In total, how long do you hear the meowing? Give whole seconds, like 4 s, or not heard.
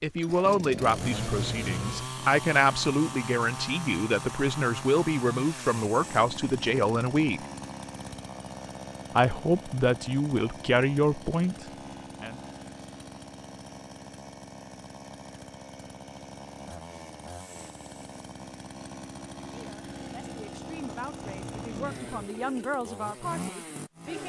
2 s.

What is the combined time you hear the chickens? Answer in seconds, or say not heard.
not heard.